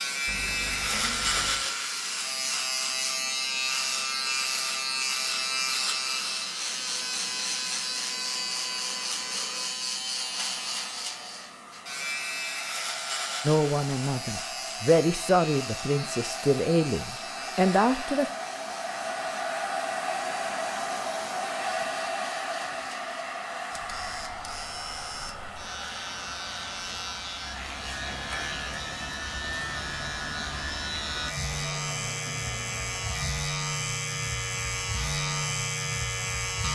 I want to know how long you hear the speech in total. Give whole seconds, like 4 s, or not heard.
5 s.